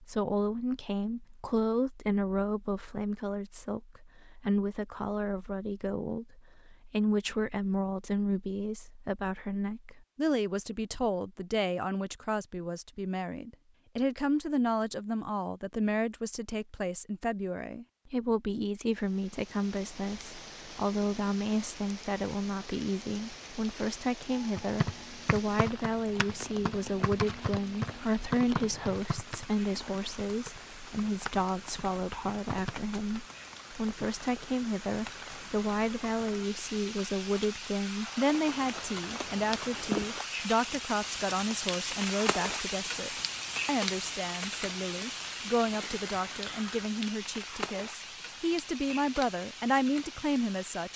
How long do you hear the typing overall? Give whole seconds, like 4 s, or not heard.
8 s.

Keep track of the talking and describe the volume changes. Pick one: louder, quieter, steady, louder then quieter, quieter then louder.
steady.